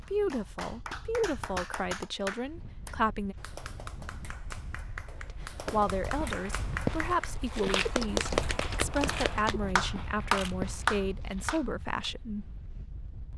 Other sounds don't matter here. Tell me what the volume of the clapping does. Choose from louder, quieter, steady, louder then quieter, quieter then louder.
quieter then louder.